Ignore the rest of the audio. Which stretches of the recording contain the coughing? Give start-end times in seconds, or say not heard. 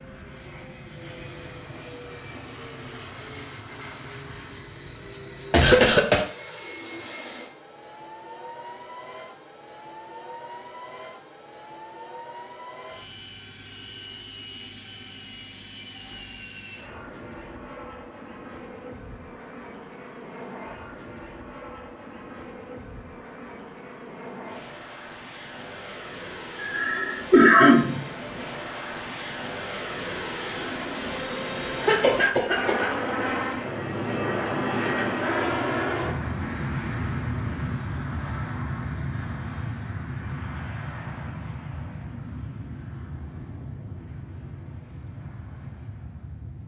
5.5-6.2, 26.6-28.0, 31.8-32.9.